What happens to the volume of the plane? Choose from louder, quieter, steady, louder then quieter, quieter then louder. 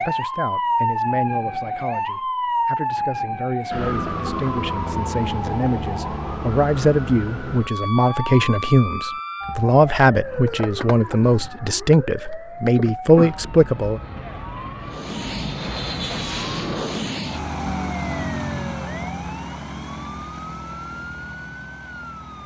quieter.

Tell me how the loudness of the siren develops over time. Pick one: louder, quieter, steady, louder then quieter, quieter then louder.
quieter.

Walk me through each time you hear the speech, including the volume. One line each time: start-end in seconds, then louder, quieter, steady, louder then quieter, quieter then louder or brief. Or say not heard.
0.1-14.0 louder.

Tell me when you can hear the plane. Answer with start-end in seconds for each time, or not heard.
14.8-22.4.